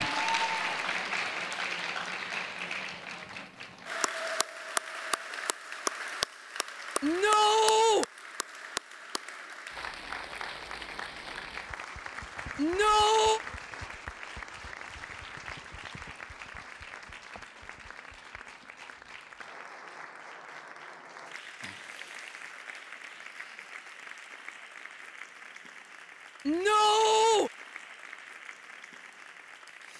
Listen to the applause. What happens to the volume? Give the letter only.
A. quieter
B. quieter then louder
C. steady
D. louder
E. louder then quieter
A.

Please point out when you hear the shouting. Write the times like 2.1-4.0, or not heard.
7.0-8.1, 12.6-13.4, 26.4-27.5.